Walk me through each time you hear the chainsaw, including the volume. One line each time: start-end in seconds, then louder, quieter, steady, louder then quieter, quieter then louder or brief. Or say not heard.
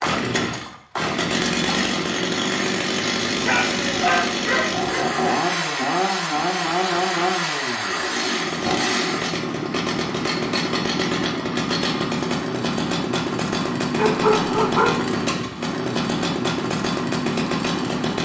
0.0-18.2 steady.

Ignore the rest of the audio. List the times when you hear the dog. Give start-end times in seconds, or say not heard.
3.5-5.0, 13.9-15.2.